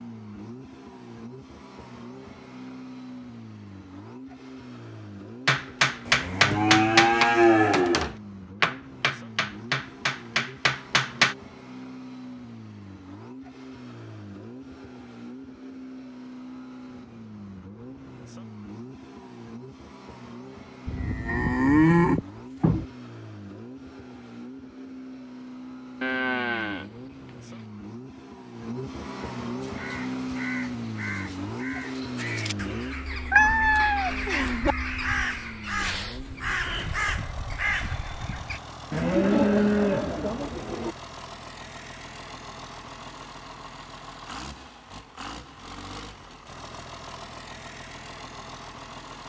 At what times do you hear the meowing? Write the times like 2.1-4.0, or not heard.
33.3-34.8.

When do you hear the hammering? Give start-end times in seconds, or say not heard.
5.5-11.3.